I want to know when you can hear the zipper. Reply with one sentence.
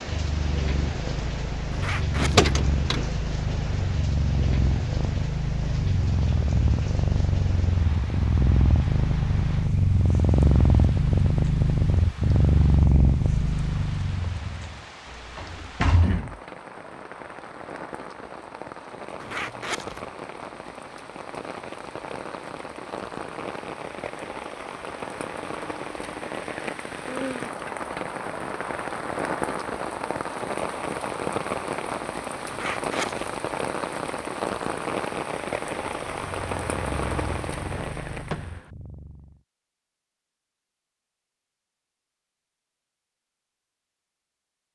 You can hear the zipper from 1.7 to 2.5 s, from 19.2 to 20.1 s and from 32.5 to 33.3 s.